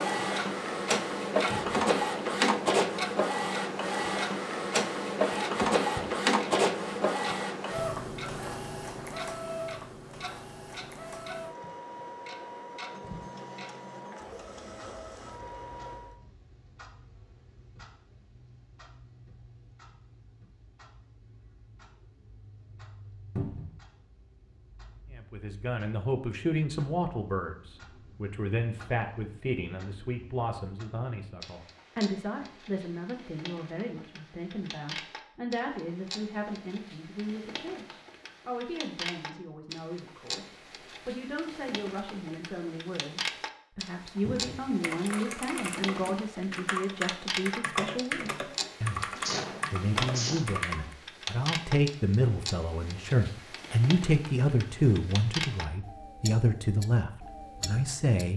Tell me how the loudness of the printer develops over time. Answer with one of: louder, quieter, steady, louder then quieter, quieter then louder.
quieter.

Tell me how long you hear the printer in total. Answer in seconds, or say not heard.
16 s.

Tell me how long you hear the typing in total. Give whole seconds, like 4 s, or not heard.
6 s.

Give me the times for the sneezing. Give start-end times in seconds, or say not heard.
49.1-50.5.